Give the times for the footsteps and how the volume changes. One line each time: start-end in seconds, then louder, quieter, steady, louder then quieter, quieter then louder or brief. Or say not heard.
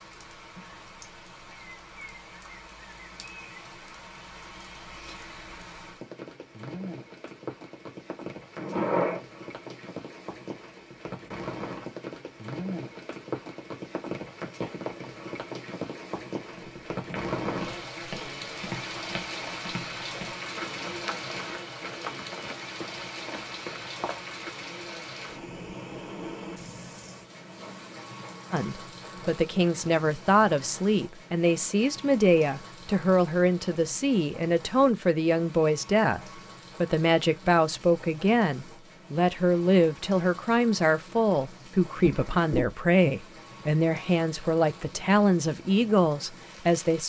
16.6-24.2 steady.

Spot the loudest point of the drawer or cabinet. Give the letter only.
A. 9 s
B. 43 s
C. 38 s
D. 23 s
A.